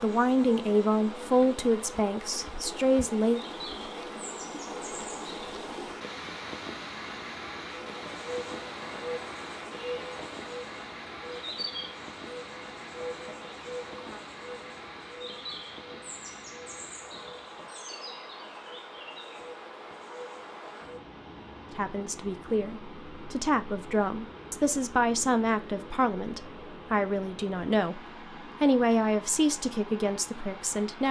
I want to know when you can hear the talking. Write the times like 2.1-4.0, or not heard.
0.0-3.4, 21.8-28.0, 28.6-31.0.